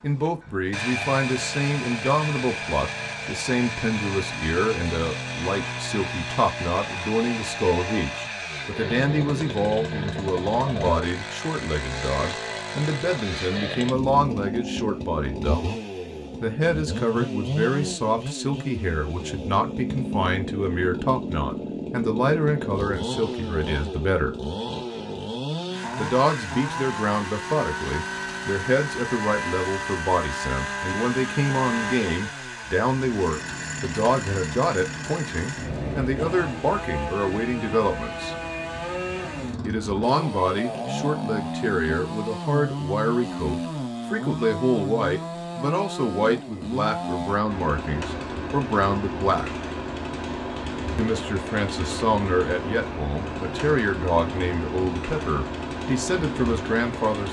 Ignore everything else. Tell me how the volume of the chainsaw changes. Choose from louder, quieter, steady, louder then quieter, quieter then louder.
steady.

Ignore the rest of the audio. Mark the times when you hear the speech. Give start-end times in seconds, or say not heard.
0.0-15.7, 16.4-24.4, 25.9-38.4, 39.6-49.5, 51.0-57.2.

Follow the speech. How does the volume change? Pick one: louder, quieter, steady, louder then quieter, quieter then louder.
steady.